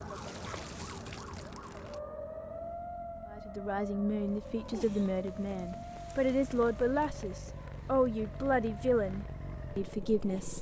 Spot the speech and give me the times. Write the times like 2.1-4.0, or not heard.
3.3-10.5.